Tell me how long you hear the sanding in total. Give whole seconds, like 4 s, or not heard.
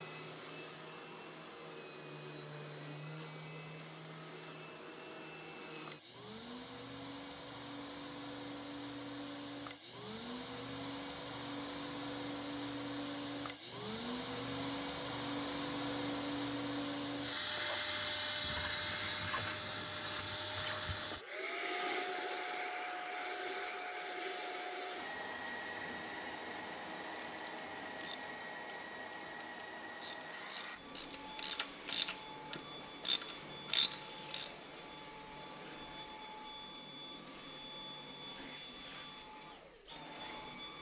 not heard.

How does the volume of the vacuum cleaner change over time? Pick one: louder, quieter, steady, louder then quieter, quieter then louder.
louder then quieter.